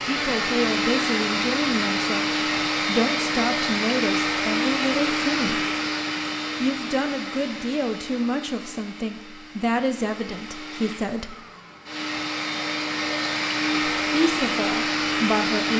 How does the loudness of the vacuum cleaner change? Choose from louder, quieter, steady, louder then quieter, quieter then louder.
quieter then louder.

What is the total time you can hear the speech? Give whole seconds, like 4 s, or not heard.
12 s.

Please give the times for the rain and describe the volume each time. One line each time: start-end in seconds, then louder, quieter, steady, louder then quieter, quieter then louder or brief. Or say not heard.
not heard.